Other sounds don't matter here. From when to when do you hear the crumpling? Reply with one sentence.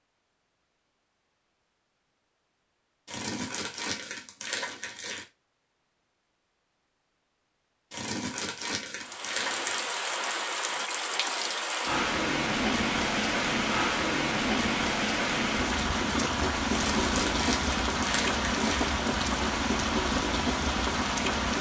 The crumpling can be heard from 3.0 to 5.2 s, from 7.9 to 9.9 s and from 16.6 to 18.9 s.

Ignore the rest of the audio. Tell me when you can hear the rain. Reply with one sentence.
You can hear the rain from 9.0 to 21.5 s.